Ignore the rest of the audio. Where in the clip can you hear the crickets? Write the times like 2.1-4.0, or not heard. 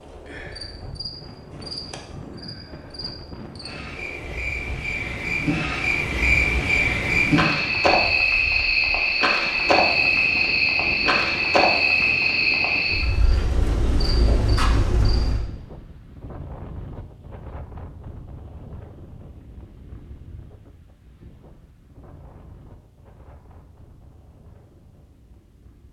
0.0-15.4.